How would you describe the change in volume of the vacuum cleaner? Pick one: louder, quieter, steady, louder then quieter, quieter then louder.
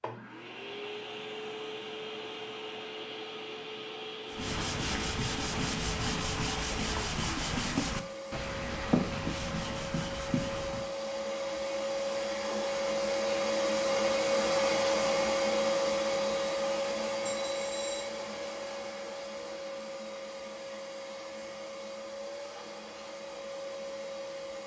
louder then quieter.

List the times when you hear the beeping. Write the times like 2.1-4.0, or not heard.
17.2-18.1.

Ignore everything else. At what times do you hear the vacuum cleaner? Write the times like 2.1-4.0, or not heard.
0.0-24.6.